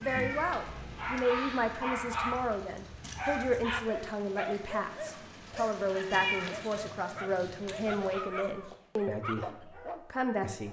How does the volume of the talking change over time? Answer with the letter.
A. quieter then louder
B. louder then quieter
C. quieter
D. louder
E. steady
E.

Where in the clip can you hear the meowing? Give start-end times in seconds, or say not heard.
0.0-1.2, 5.5-6.5.